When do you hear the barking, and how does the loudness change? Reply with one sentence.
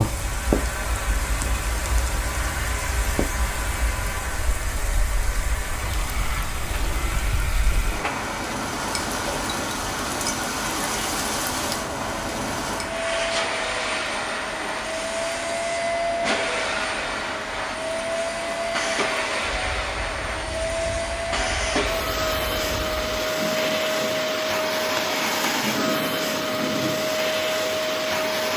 You can't hear the barking here.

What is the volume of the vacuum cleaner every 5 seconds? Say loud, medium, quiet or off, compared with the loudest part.
medium, medium, loud, loud, loud, loud.